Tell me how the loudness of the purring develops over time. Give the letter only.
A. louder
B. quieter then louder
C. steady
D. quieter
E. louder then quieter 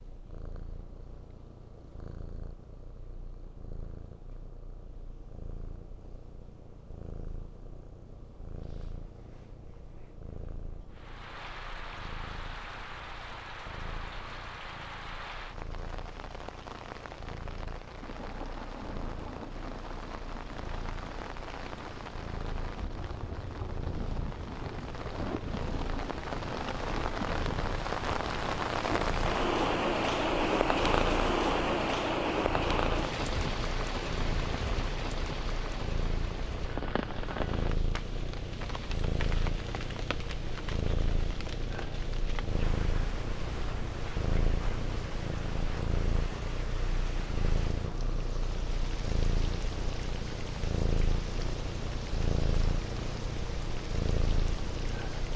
A.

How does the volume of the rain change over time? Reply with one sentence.
The volume of the rain goes up, then down.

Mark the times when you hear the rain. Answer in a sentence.
You can hear the rain from 10.9 to 55.3 s.